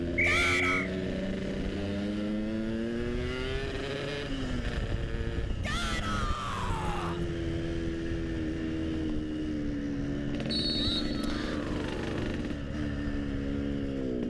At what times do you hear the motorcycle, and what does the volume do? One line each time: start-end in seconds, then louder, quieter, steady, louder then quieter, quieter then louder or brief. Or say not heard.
0.0-14.2 steady.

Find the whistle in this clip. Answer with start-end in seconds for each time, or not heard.
0.1-0.9, 10.5-11.6.